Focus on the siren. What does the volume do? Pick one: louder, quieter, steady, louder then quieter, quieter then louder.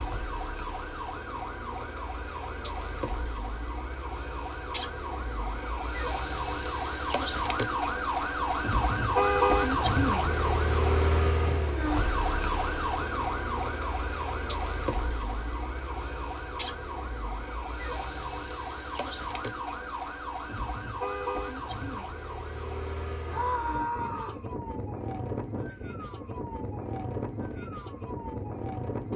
louder then quieter.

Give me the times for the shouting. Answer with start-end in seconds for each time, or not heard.
23.2-24.4.